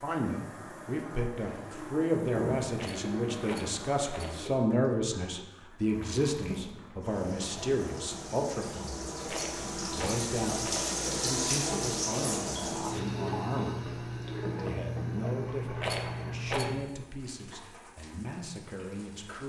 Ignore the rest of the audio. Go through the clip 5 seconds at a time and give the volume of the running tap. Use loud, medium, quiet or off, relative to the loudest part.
medium, medium, loud, medium.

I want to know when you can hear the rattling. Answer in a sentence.
You can hear the rattling from 2.8 to 4.4 s, from 9.2 to 10.9 s and from 15.8 to 16.7 s.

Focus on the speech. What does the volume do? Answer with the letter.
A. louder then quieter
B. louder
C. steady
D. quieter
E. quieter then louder
D.